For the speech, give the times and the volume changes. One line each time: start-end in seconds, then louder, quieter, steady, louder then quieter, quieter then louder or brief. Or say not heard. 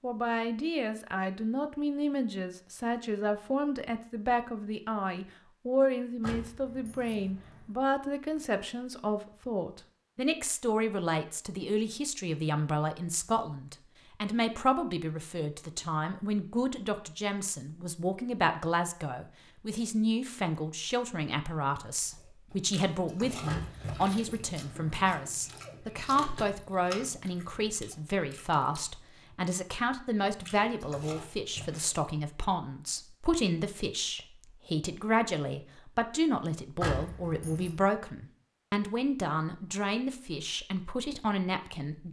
0.0-42.0 steady.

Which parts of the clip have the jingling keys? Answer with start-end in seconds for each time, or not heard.
6.2-7.7, 23.4-25.1, 36.8-37.8.